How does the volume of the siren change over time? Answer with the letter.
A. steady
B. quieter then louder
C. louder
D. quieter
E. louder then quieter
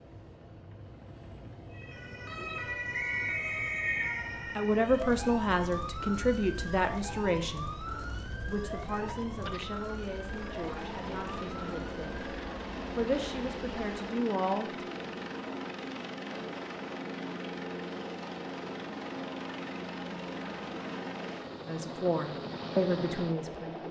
D.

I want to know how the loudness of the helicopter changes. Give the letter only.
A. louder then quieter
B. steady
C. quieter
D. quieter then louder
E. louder
E.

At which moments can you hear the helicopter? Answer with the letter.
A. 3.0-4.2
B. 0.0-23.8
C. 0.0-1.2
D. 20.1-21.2
B.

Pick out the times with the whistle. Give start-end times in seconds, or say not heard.
3.0-4.2.